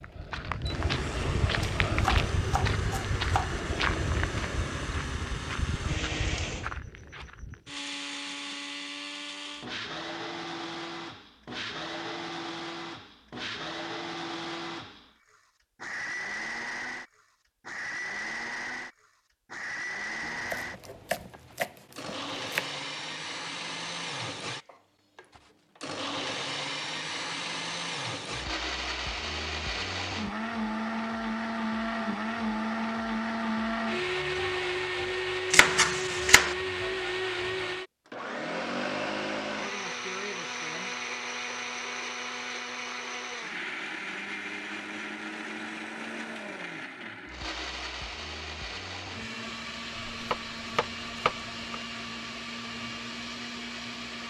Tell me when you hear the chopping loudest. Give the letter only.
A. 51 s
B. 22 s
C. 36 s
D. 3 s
C.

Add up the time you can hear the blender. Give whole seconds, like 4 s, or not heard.
54 s.